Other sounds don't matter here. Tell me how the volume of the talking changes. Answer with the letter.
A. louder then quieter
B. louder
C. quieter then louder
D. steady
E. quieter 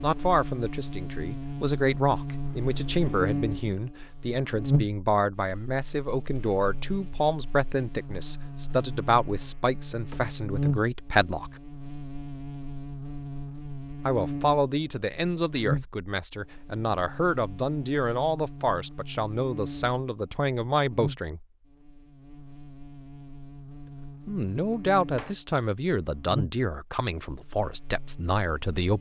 D.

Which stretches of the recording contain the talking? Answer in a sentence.
You can hear the talking from 0.0 to 11.6 s, from 14.1 to 21.4 s and from 24.2 to 28.9 s.